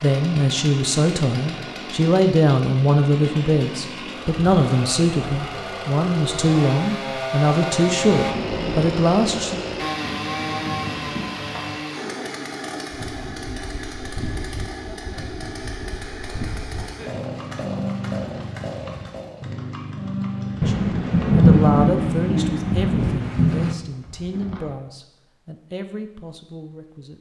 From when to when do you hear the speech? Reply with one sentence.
The speech can be heard from 0.0 to 9.6 s and from 20.6 to 27.1 s.